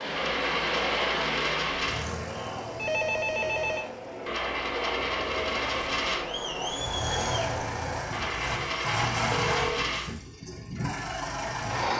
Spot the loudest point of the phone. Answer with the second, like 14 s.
3 s.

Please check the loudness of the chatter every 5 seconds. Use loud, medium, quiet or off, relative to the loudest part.
loud, loud, off.